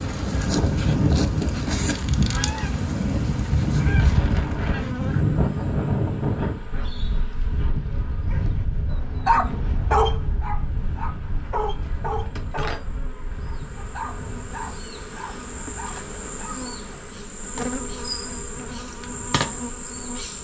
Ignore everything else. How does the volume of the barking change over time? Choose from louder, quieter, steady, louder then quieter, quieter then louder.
quieter.